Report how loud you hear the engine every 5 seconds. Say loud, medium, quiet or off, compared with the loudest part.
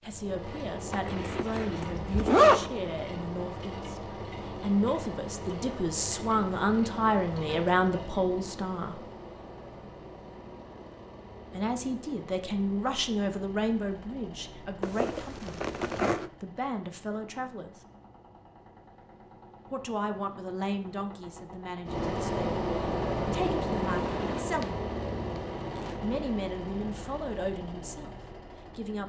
medium, medium, quiet, quiet, loud, medium.